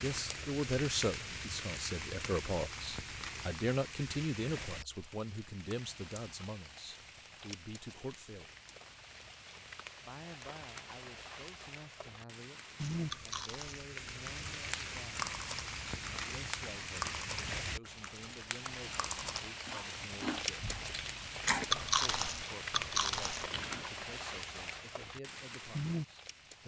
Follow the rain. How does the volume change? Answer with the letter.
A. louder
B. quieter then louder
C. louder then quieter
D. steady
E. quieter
B.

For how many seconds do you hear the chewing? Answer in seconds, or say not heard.
11 s.